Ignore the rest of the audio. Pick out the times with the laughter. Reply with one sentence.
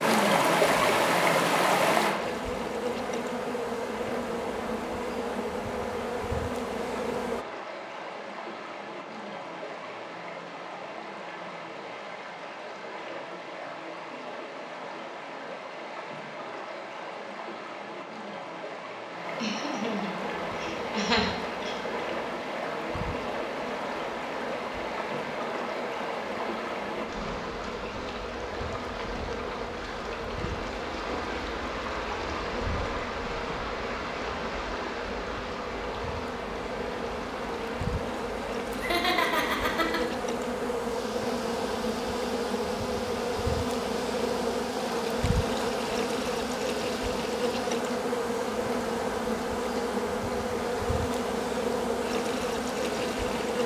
The laughter can be heard from 19.4 to 21.8 s and from 38.7 to 40.0 s.